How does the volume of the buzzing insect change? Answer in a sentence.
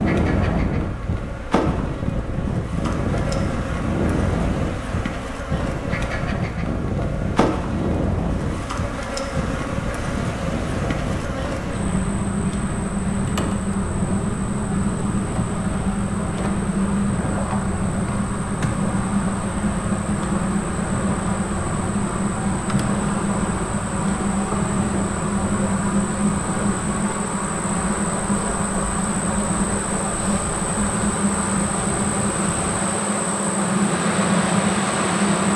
The volume of the buzzing insect goes up.